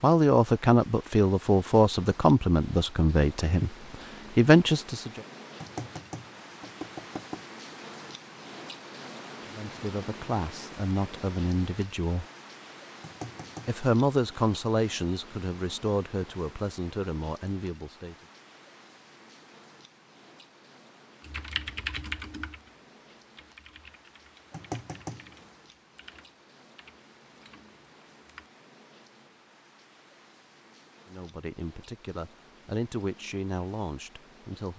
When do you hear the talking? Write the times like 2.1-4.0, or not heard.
0.0-5.2, 9.5-12.2, 13.7-18.1, 31.1-34.7.